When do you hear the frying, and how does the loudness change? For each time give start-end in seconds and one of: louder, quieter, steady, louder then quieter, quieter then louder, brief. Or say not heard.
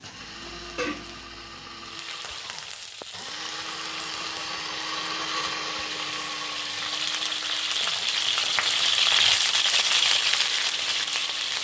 0.0-11.5 louder.